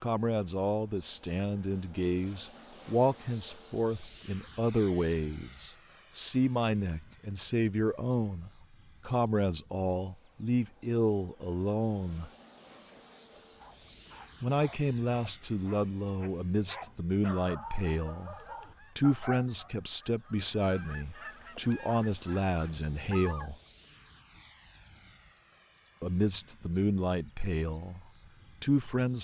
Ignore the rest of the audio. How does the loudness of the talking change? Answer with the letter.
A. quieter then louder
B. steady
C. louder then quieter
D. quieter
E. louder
B.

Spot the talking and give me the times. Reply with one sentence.
You can hear the talking from 0.0 to 12.3 s, from 14.4 to 23.6 s and from 26.0 to 29.1 s.